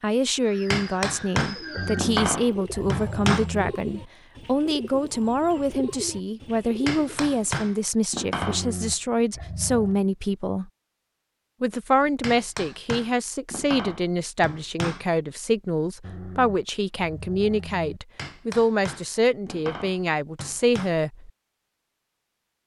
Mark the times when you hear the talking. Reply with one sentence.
You can hear the talking from 0.0 to 10.7 s and from 11.6 to 21.3 s.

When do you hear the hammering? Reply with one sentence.
You can hear the hammering from 0.7 to 3.5 s, from 6.8 to 8.7 s, from 12.2 to 15.1 s and from 18.1 to 20.9 s.